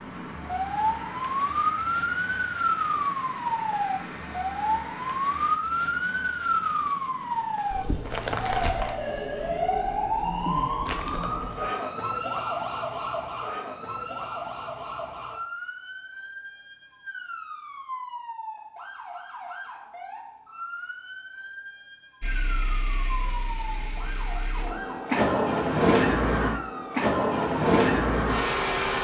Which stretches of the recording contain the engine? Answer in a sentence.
The engine can be heard from 0.0 to 5.5 s and from 22.2 to 29.0 s.